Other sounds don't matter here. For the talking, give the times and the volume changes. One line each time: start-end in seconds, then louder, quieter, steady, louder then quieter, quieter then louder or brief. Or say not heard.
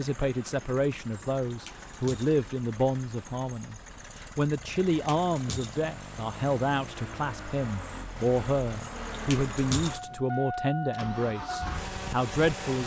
0.0-12.8 steady.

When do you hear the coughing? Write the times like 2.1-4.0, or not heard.
not heard.